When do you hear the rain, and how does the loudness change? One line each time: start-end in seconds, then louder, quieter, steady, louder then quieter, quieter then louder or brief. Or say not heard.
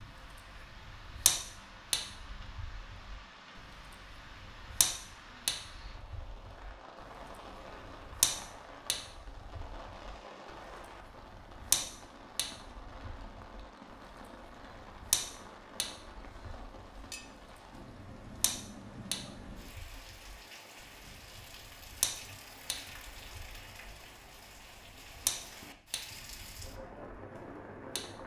0.0-28.2 steady.